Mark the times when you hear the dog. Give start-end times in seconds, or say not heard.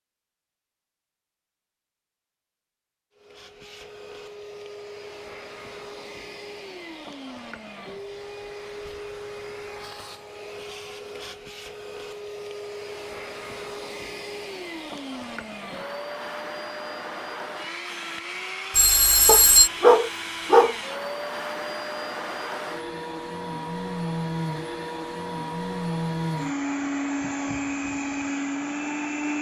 19.2-20.8.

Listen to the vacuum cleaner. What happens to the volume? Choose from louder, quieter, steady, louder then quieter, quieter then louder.
louder.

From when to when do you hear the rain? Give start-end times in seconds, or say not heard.
not heard.